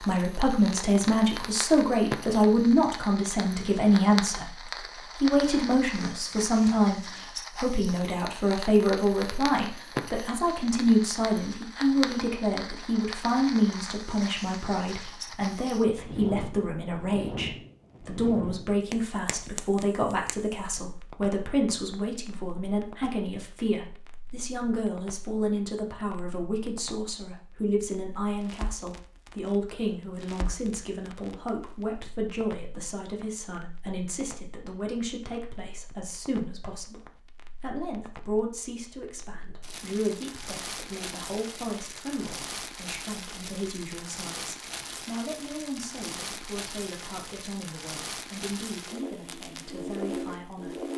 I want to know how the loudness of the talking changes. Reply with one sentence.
The loudness of the talking goes down.